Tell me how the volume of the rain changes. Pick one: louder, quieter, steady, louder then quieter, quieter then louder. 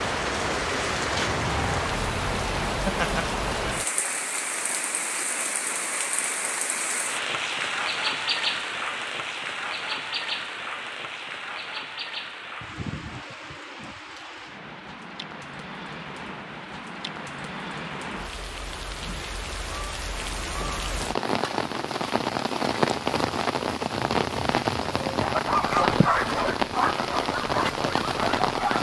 quieter then louder.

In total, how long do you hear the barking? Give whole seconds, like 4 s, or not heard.
4 s.